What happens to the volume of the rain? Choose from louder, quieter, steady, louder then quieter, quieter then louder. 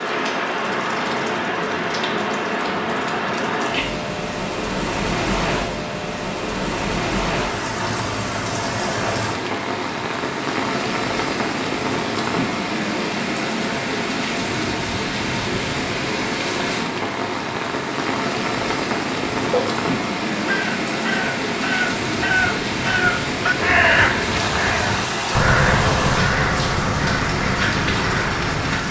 steady.